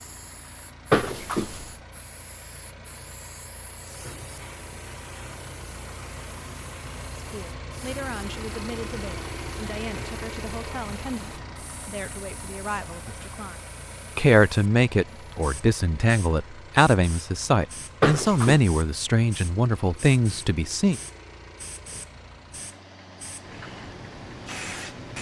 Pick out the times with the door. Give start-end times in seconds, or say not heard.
0.9-1.7, 18.0-18.6.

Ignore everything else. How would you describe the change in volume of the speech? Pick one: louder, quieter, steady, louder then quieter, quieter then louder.
louder.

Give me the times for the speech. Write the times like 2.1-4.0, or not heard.
7.2-21.0.